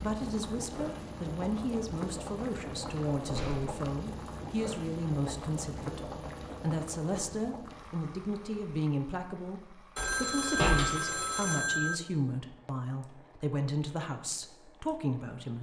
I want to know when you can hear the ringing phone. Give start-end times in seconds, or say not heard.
9.9-11.9.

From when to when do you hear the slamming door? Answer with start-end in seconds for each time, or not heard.
3.1-3.8, 9.9-10.9.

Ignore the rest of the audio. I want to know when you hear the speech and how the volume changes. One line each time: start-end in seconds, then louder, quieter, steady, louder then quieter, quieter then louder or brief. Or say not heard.
0.0-15.5 steady.